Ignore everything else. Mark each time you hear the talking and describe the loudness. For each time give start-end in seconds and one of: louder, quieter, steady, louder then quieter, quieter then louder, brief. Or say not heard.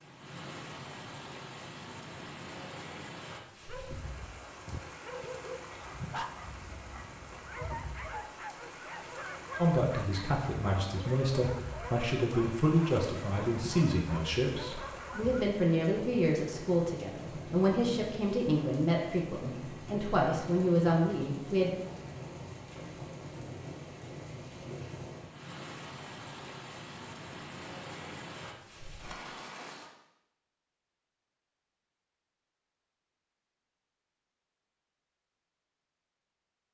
9.6-21.7 steady.